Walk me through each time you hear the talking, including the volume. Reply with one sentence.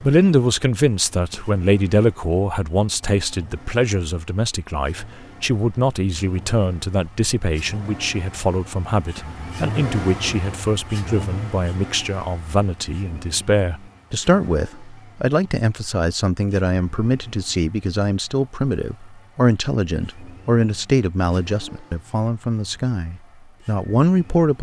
You can hear the talking from 0.0 to 24.5 s, at a steady volume.